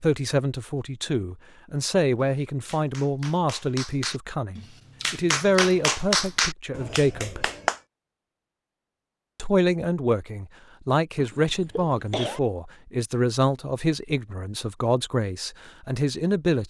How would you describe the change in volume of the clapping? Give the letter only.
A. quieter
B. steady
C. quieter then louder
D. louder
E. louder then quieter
E.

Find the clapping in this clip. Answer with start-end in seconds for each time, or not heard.
2.2-7.8.